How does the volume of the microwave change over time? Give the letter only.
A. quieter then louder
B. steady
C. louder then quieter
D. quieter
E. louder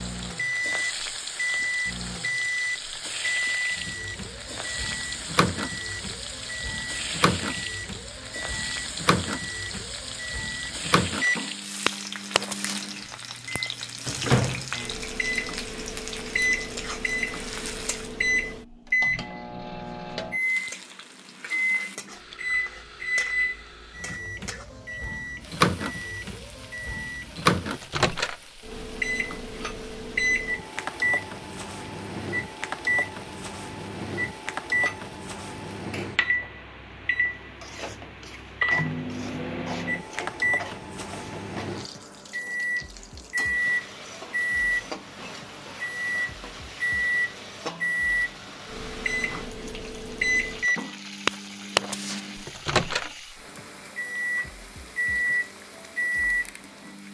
B.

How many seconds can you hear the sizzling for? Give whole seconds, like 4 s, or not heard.
55 s.